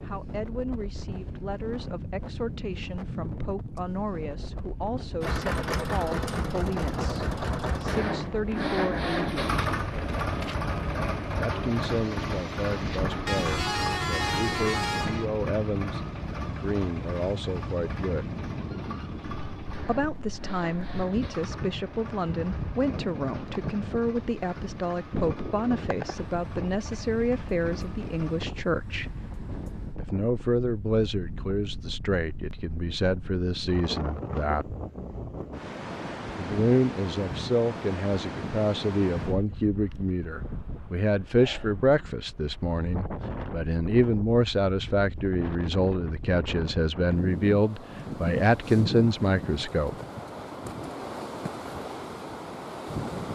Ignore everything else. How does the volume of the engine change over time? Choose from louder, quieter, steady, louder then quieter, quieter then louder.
quieter.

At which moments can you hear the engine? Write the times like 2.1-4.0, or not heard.
5.2-28.4.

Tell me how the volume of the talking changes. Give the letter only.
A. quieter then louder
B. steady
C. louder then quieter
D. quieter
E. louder
E.